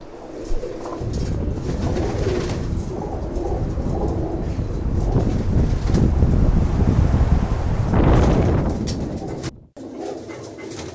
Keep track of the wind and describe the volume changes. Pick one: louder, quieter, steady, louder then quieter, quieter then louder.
louder.